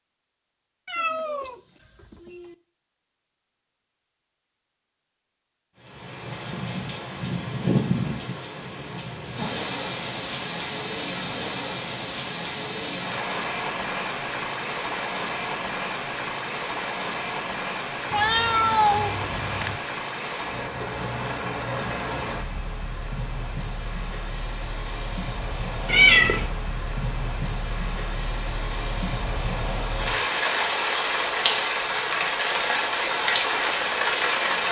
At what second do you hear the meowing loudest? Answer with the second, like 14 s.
26 s.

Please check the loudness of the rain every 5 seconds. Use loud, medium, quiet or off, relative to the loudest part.
off, medium, medium, medium, medium, medium, loud.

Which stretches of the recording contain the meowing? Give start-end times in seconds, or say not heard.
0.8-2.5, 18.1-19.8, 25.9-26.5.